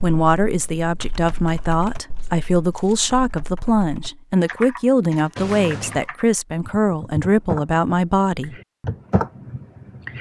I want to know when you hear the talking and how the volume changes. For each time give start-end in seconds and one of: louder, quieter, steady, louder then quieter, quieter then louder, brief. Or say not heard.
0.0-8.6 steady.